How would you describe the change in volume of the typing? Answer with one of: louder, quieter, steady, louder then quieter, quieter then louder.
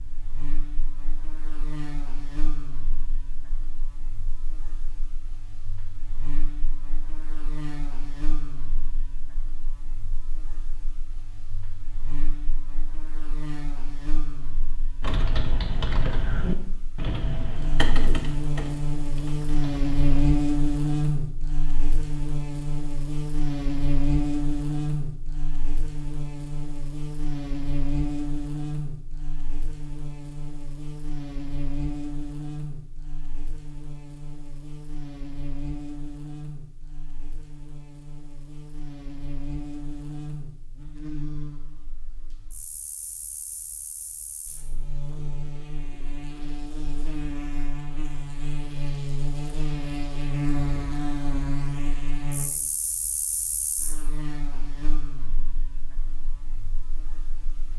quieter.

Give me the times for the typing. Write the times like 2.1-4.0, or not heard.
15.0-20.3.